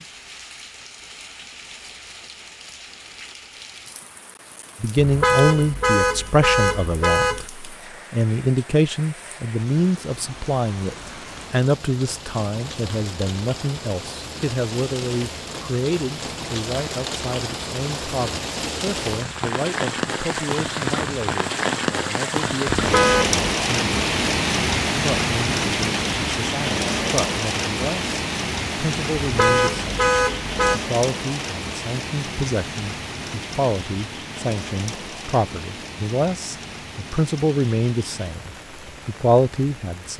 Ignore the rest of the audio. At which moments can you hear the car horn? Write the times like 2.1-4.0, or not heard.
5.0-7.5, 22.8-23.4, 29.2-30.8.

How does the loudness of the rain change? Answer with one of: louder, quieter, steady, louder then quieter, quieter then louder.
louder then quieter.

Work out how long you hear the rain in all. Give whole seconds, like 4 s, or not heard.
40 s.